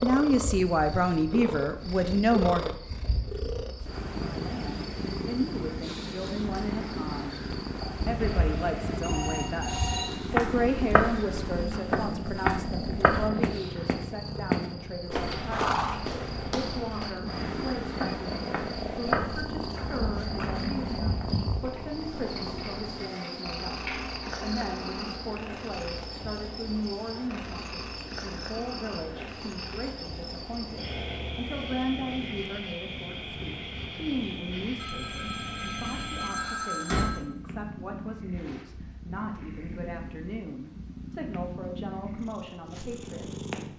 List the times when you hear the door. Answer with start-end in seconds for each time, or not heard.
36.4-37.1.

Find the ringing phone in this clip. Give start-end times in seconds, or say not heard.
8.2-10.2, 34.8-37.2.